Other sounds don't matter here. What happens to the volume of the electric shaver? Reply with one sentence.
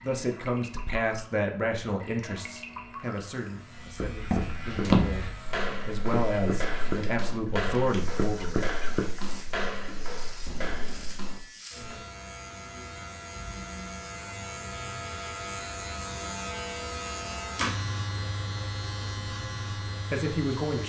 The volume of the electric shaver goes up.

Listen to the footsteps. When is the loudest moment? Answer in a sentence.
The loudest moment of the footsteps is at 5 seconds.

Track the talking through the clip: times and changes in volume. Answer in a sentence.
The talking can be heard from 0.0 to 8.6 s, getting quieter then louder; and briefly from 20.1 to 20.8 s.